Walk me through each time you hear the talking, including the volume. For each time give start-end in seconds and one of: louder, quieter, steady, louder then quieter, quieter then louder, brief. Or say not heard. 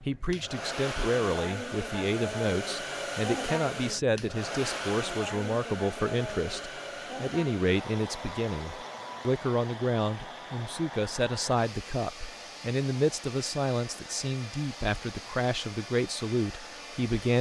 0.0-17.3 steady.